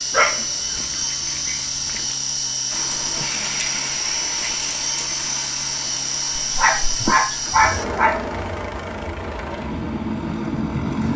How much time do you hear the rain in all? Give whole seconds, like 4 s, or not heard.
8 s.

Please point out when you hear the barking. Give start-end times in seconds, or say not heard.
0.1-2.1, 6.4-8.2.